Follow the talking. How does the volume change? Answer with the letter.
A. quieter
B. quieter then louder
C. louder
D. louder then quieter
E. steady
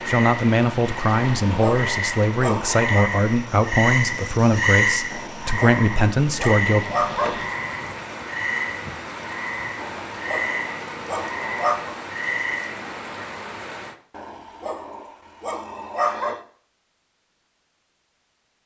E.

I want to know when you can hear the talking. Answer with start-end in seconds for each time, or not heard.
0.1-6.8.